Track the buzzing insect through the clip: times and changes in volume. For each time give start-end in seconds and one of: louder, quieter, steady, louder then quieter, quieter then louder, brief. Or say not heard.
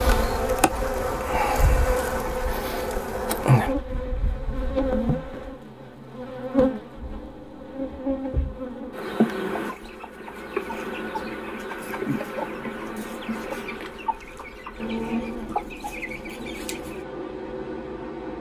0.0-18.3 quieter.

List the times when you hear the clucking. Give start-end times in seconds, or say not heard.
9.5-17.0.